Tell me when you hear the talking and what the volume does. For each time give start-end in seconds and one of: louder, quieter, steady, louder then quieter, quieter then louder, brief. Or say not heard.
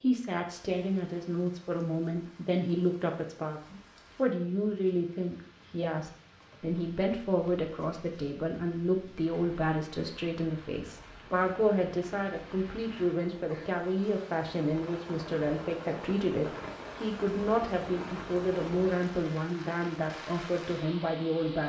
0.0-21.6 steady.